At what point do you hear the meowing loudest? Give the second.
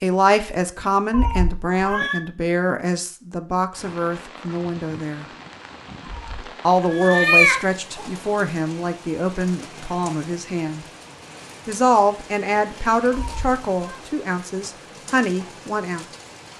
7 s.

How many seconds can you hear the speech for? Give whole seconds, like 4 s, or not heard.
14 s.